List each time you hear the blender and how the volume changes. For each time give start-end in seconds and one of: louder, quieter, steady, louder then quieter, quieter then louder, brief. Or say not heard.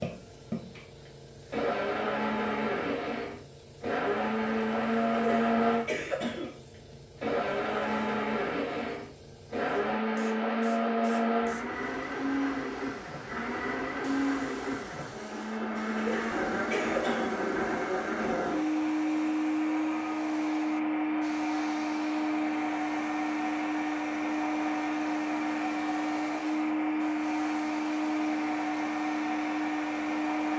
0.0-30.5 steady.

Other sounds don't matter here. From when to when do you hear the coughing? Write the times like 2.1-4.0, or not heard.
5.1-6.6, 15.9-17.4.